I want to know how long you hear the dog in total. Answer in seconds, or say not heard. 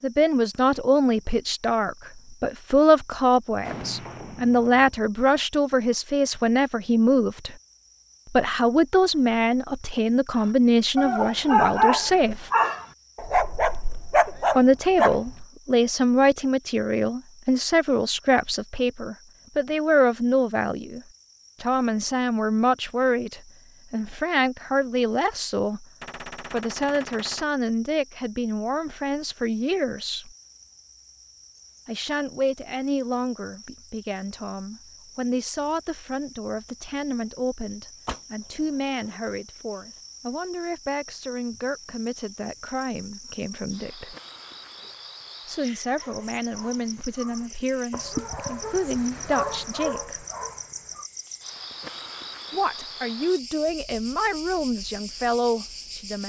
10 s.